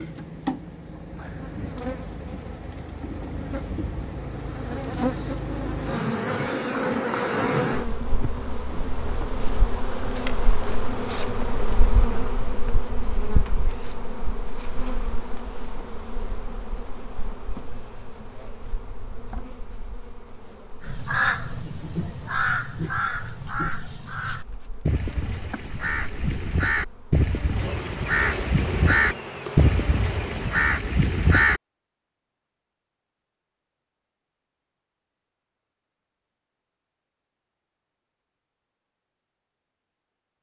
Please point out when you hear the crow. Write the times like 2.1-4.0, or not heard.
20.8-31.6.